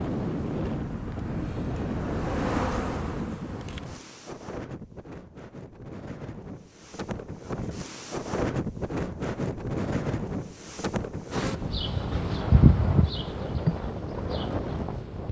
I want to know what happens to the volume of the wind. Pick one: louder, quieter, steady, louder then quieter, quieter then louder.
quieter then louder.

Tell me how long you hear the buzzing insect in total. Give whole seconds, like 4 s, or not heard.
8 s.